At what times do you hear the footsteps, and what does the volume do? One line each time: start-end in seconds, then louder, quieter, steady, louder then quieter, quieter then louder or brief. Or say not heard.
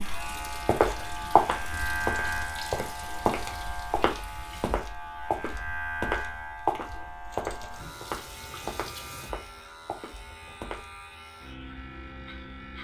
0.7-11.1 quieter.